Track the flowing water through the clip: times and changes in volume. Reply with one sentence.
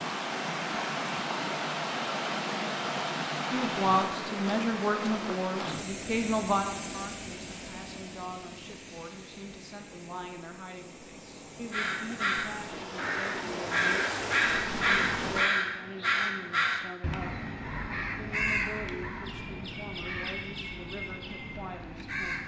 The flowing water can be heard from 0.0 to 15.5 s, getting quieter then louder.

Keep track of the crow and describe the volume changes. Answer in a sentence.
The loudness of the crow goes down.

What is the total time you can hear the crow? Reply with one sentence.
You can hear the crow for 11 seconds altogether.